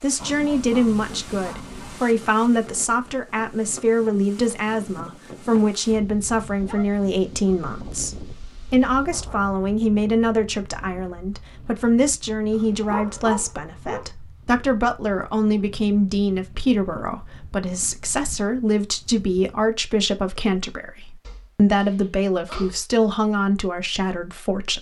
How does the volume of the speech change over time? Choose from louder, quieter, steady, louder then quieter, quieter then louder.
steady.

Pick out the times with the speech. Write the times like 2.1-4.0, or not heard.
0.0-24.7.